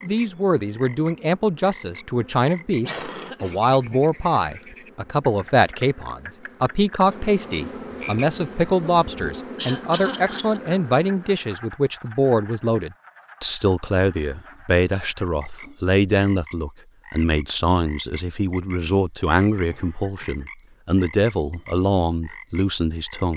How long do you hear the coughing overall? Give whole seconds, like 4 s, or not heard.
3 s.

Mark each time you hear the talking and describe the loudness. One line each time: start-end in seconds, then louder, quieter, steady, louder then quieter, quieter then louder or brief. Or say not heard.
0.0-23.3 steady.